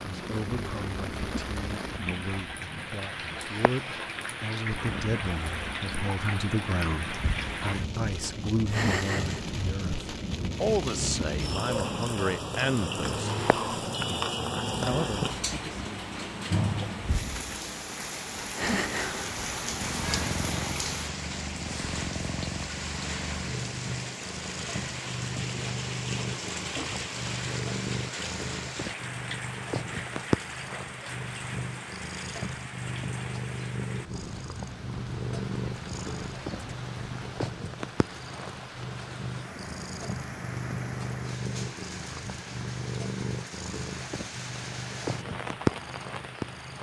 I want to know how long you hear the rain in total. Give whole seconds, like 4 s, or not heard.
47 s.